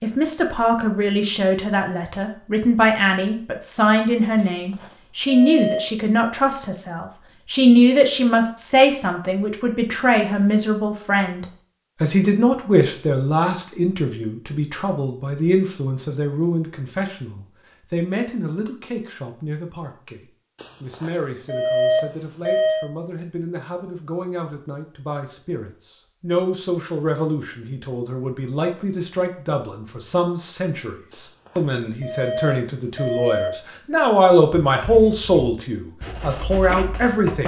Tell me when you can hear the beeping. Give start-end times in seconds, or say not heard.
4.4-5.8, 20.6-22.9, 31.1-33.5.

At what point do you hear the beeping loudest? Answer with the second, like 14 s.
22 s.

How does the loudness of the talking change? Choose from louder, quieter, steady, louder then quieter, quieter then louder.
quieter then louder.